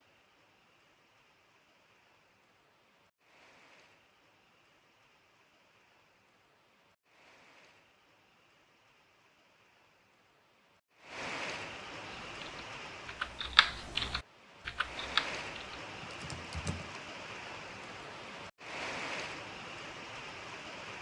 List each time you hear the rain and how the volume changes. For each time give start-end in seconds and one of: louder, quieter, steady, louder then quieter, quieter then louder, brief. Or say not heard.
0.0-20.9 louder.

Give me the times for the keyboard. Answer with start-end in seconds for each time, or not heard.
12.3-17.0.